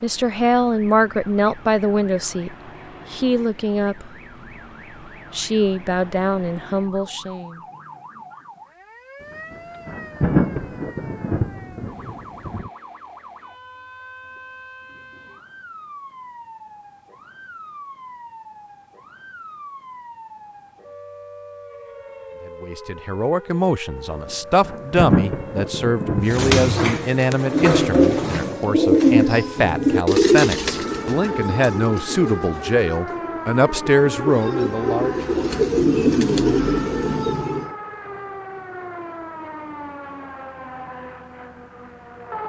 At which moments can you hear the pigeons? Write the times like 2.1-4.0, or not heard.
26.2-37.8.